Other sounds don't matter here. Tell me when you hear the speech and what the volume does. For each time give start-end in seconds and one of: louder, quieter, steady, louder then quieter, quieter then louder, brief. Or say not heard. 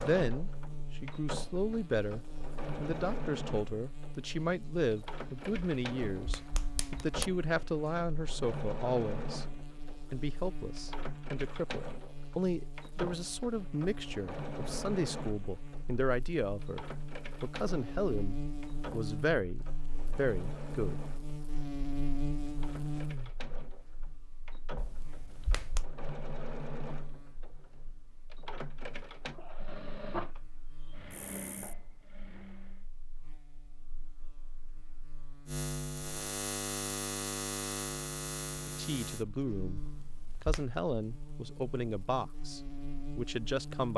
0.0-21.0 steady
38.6-43.9 steady.